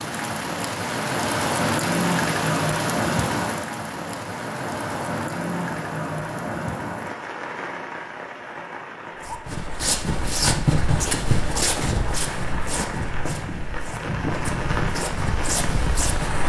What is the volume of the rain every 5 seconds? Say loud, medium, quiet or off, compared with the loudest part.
loud, medium, medium, medium.